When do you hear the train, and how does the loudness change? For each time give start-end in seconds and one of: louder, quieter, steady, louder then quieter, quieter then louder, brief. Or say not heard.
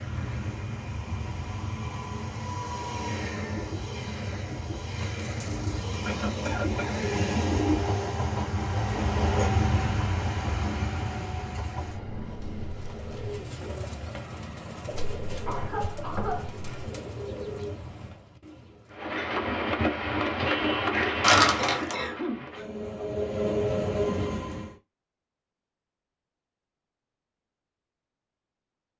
0.0-13.4 louder then quieter
18.9-24.8 quieter then louder.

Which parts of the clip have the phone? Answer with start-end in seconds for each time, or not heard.
21.2-21.9.